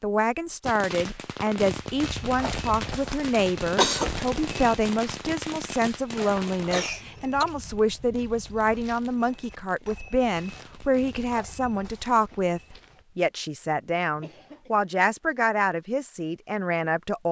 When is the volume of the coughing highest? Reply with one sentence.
The loudest moment of the coughing is at 4 seconds.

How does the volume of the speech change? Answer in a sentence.
The loudness of the speech stays about the same.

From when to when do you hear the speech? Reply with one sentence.
The speech can be heard from 0.0 to 17.2 s.